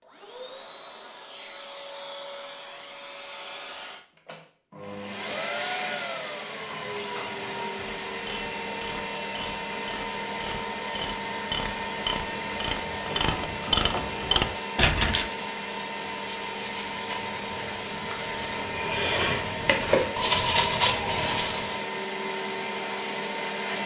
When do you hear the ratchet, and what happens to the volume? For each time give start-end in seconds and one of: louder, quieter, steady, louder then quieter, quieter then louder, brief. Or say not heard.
6.5-15.3 louder.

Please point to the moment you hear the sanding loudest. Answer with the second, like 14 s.
21 s.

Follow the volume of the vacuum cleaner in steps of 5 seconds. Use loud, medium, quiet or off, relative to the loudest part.
medium, loud, loud, loud, loud.